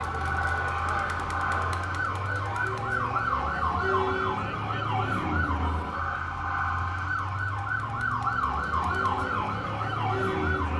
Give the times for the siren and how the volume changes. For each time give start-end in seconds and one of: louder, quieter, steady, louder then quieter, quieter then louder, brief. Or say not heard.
0.0-10.7 steady.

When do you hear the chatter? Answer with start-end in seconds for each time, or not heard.
0.0-10.7.